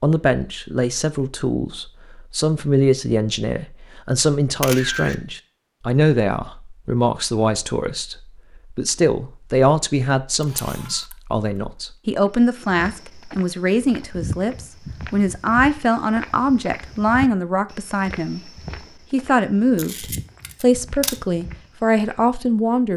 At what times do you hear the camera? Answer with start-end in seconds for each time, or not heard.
4.6-5.2, 10.4-11.2, 19.8-21.2.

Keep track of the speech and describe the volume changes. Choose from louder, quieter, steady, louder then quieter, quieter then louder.
steady.